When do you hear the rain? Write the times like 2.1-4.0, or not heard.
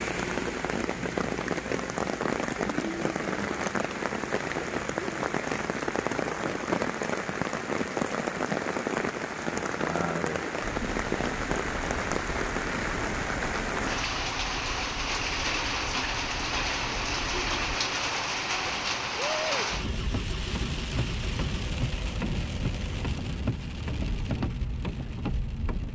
0.0-25.9.